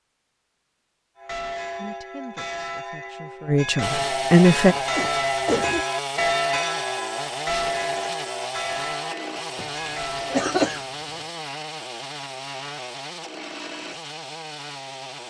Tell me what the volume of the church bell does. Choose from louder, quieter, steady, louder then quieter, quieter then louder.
louder then quieter.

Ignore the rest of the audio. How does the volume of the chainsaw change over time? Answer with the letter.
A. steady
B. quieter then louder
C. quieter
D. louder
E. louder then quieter
C.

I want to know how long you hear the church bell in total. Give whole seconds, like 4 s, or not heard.
9 s.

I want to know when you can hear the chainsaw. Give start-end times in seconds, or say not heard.
3.8-15.2.